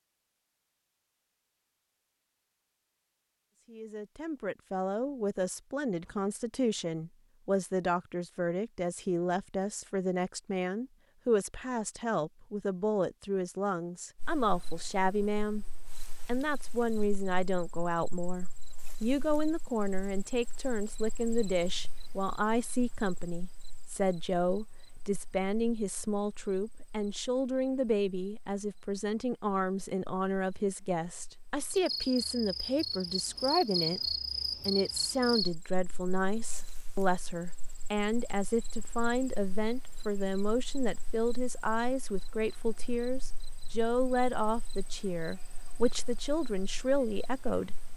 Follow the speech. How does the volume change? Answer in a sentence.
The loudness of the speech stays about the same.